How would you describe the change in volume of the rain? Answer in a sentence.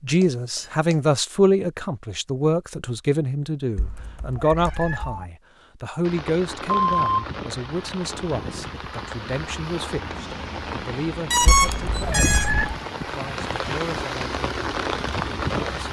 The loudness of the rain goes up.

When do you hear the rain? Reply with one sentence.
The rain can be heard from 6.0 to 15.8 s.